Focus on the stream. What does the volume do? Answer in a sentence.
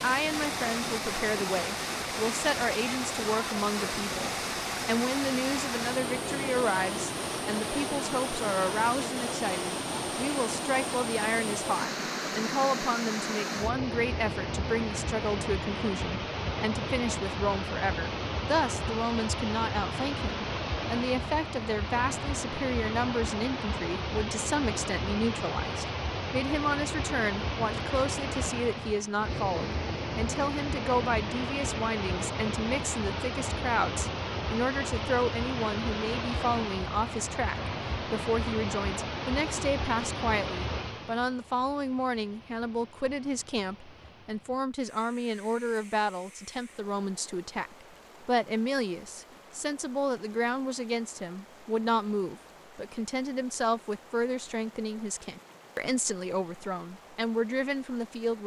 The loudness of the stream goes down.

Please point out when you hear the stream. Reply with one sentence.
You can hear the stream from 0.0 to 58.4 s.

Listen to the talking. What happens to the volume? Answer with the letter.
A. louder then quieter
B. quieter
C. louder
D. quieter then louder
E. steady
E.